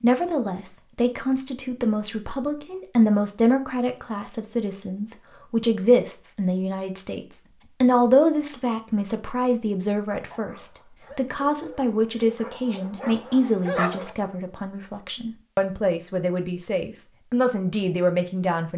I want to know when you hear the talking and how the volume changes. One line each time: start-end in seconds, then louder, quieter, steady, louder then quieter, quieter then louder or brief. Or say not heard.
0.0-18.7 steady.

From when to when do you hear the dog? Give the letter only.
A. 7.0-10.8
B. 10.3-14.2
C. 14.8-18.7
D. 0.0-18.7
B.